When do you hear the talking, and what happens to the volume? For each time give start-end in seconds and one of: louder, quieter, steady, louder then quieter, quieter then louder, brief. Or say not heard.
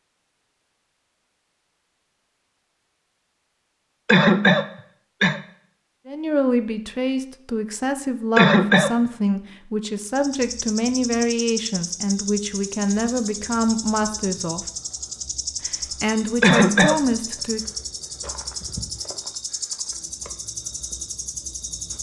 6.0-14.7 steady
15.7-17.6 brief.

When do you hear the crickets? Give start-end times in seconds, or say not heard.
9.9-21.9.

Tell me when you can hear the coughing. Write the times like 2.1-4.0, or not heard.
4.0-5.4, 8.3-8.9, 16.4-17.0.